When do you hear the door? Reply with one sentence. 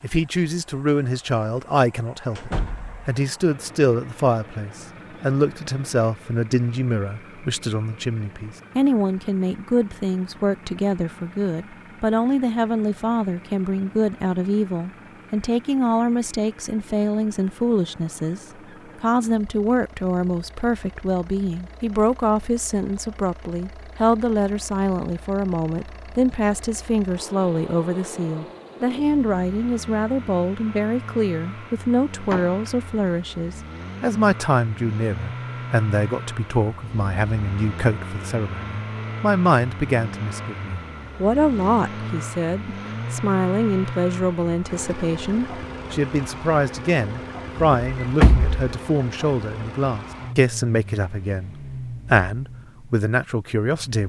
The door can be heard from 2.4 to 3.1 s, from 32.3 to 32.7 s and from 47.5 to 48.7 s.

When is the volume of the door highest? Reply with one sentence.
The volume of the door peaks at 48 seconds.